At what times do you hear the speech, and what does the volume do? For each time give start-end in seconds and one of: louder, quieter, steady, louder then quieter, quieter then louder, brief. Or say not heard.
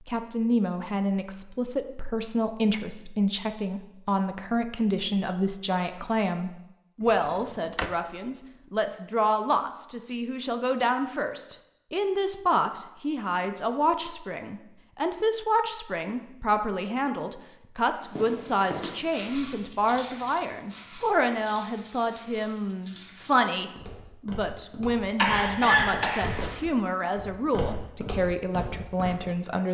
0.1-29.6 steady.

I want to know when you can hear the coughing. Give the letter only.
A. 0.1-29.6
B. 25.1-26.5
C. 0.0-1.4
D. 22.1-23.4
B.